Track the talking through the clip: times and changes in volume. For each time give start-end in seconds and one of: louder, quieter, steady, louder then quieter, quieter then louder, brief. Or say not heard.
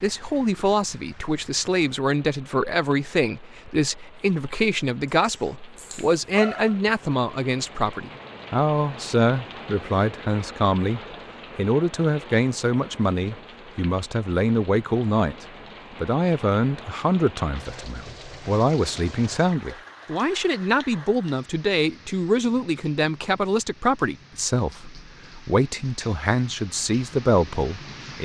0.0-28.2 steady.